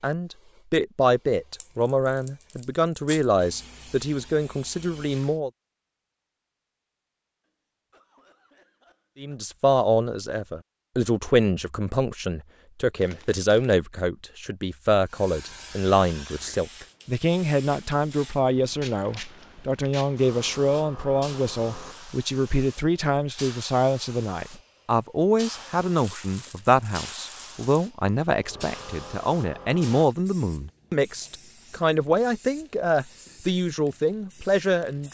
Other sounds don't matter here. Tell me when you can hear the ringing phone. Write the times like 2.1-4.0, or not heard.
not heard.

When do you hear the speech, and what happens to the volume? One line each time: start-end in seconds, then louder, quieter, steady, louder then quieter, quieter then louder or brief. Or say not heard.
0.0-5.5 quieter
9.2-35.0 steady.